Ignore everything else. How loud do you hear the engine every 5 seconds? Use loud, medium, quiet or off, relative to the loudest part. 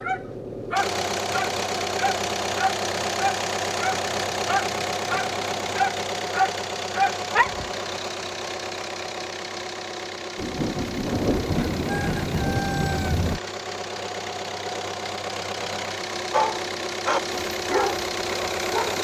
loud, loud, medium, loud.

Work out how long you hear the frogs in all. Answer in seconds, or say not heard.
not heard.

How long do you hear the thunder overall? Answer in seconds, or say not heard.
3 s.